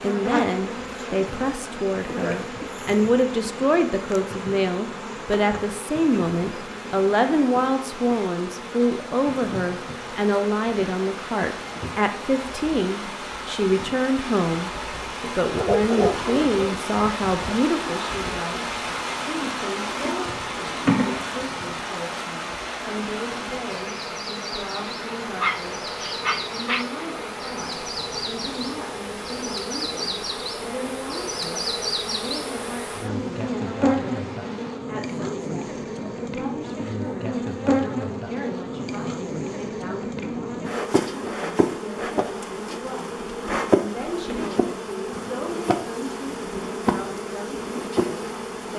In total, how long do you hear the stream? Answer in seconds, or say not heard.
35 s.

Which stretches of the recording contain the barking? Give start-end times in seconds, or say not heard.
15.6-17.6, 25.4-26.9.